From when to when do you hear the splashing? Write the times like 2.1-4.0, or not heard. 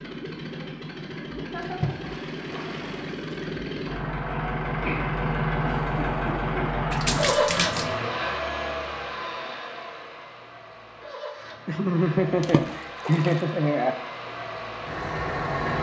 1.6-3.4, 6.9-8.0, 12.4-13.3.